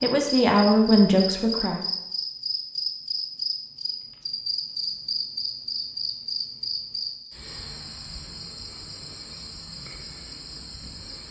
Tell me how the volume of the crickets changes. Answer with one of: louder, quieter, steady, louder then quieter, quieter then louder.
quieter.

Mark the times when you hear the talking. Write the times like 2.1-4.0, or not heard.
0.0-1.8.